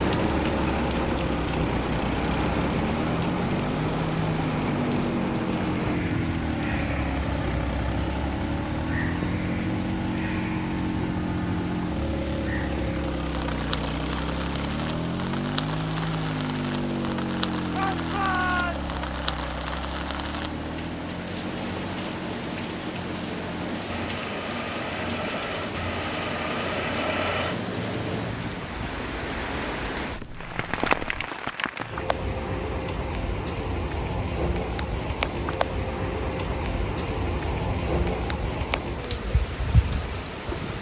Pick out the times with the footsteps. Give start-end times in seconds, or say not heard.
not heard.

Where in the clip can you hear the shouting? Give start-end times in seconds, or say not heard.
17.7-18.9.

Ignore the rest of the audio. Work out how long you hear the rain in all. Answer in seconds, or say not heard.
41 s.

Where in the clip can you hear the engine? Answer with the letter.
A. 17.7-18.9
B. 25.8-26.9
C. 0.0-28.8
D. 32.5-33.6
C.